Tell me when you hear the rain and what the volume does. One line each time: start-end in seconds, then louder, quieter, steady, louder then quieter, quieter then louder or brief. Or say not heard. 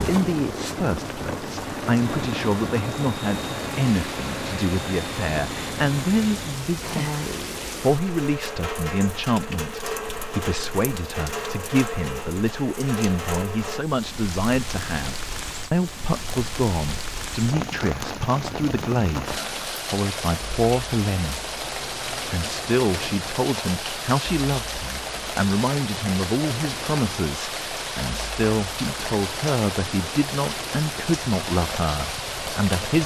0.0-33.0 steady.